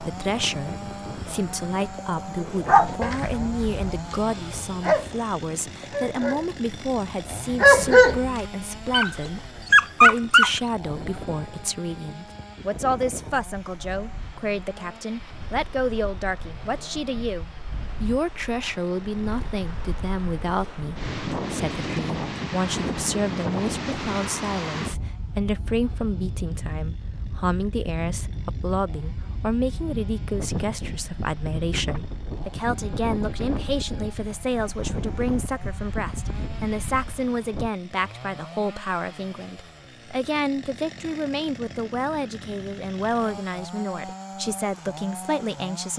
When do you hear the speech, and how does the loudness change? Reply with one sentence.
You can hear the speech from 0.0 to 45.9 s, at a steady volume.